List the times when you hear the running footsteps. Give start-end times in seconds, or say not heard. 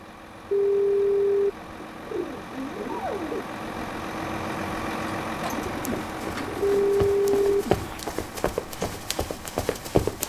5.8-10.2.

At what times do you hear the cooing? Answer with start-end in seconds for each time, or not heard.
1.9-3.5, 5.5-8.0.